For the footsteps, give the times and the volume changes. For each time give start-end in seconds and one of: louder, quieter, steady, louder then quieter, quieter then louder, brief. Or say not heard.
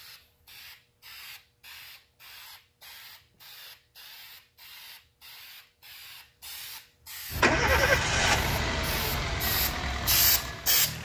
not heard.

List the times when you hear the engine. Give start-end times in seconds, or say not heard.
7.3-11.0.